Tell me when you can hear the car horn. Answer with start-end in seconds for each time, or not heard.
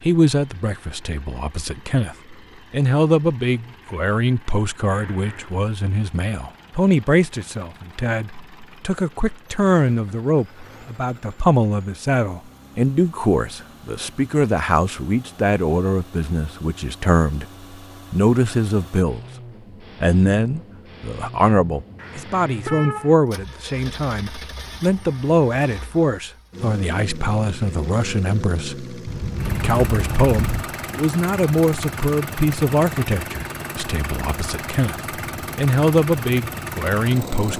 4.9-5.5, 21.9-23.1, 29.1-30.7.